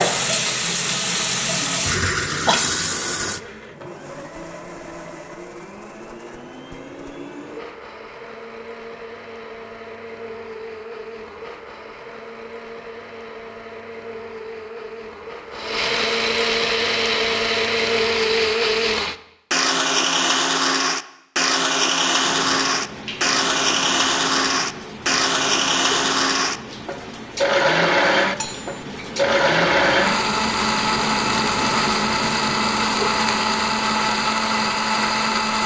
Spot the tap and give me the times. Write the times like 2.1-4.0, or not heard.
0.0-3.4, 22.1-35.6.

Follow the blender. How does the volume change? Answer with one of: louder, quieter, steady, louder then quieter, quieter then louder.
louder.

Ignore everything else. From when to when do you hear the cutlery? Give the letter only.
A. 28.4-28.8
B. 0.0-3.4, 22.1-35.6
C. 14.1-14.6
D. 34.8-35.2
A.